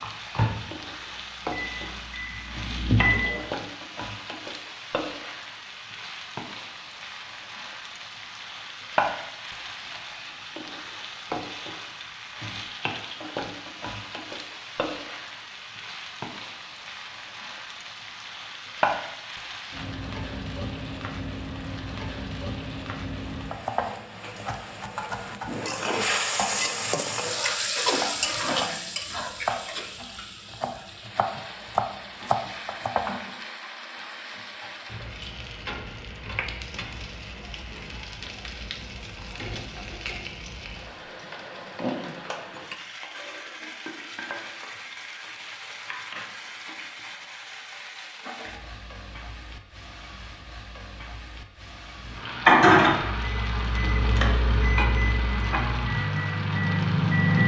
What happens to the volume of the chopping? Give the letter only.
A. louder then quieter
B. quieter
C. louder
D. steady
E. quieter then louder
C.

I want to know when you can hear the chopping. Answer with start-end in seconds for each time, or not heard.
23.3-33.1.